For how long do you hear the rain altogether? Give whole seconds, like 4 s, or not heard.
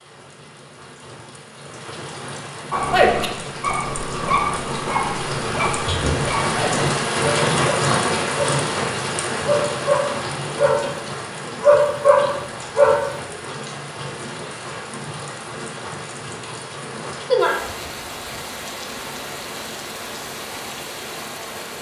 22 s.